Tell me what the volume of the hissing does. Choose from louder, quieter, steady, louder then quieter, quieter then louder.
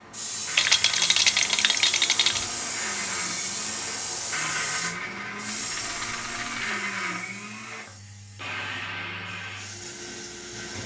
quieter.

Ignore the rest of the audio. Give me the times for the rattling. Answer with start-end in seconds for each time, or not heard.
0.5-2.5, 5.5-6.8.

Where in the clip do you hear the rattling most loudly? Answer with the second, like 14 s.
1 s.